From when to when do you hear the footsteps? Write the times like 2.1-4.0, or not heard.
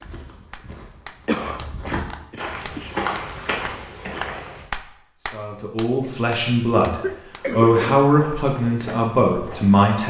0.0-4.7, 7.6-9.8.